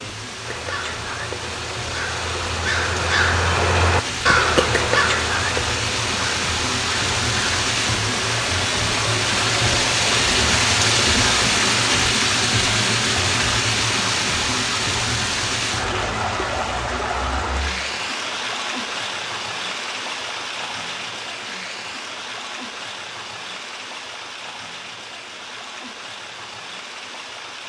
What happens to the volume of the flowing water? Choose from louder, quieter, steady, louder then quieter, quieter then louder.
louder then quieter.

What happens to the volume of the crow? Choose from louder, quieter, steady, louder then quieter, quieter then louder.
louder then quieter.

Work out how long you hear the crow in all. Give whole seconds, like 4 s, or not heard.
7 s.